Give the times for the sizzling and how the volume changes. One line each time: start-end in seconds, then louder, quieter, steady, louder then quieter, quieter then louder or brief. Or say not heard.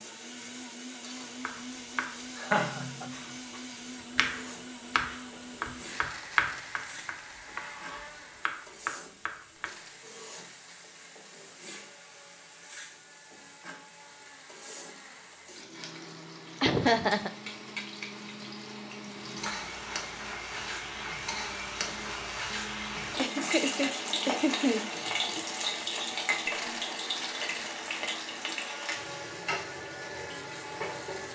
0.0-31.3 louder.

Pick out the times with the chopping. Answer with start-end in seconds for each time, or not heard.
1.4-9.8.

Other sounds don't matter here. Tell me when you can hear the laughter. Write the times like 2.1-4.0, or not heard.
2.4-3.1, 16.6-17.3, 23.1-24.8.